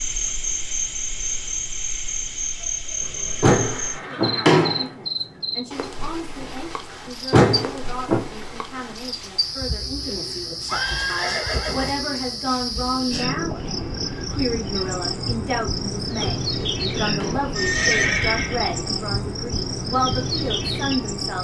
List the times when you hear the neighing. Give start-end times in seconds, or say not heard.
3.0-5.4, 10.7-12.0, 17.6-18.6.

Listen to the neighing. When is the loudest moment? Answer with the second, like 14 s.
18 s.